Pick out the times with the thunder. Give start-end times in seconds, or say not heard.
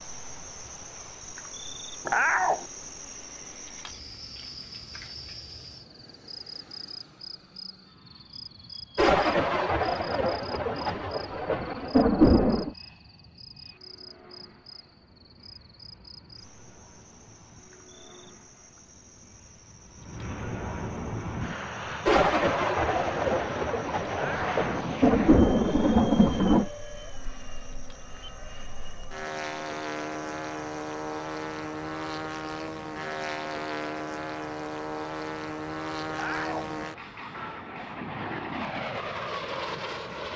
8.9-12.8, 22.1-26.7.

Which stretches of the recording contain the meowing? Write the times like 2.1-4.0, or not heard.
2.0-2.6, 24.1-24.6, 36.1-36.7.